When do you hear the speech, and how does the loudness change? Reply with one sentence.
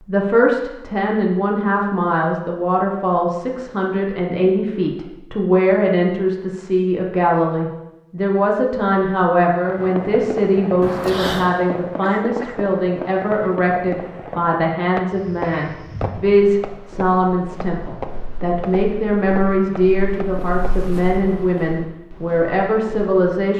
The speech can be heard from 0.1 to 23.5 s, at a steady volume.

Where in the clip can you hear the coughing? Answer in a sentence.
The coughing can be heard from 10.8 to 11.6 s.